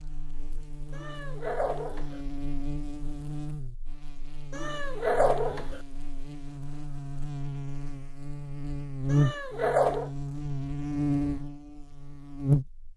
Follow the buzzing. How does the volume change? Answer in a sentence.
The volume of the buzzing goes up.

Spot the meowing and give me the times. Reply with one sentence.
You can hear the meowing from 0.9 to 2.2 s, from 4.5 to 5.8 s and from 9.1 to 10.1 s.